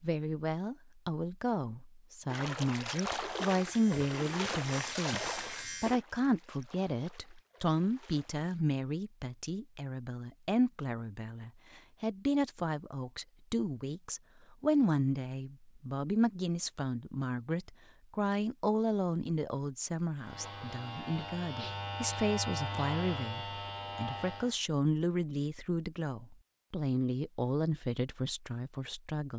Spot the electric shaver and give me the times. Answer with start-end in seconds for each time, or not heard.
3.4-6.0, 20.1-24.6.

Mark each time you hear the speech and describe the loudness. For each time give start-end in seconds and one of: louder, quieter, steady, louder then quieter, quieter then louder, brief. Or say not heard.
0.0-29.3 steady.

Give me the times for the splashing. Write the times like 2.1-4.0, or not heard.
2.2-8.6.